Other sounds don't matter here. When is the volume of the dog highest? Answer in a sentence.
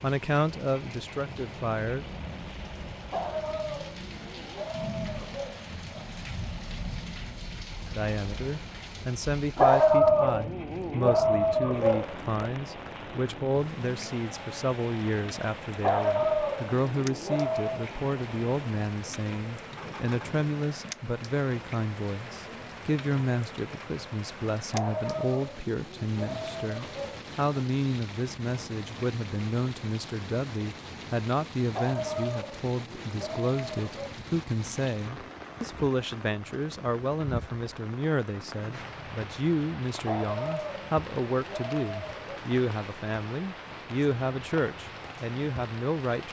The volume of the dog peaks at 10 seconds.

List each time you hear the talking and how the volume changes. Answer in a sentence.
You can hear the talking briefly from 0.0 to 2.0 s; and from 8.0 to 46.2 s, at a steady volume.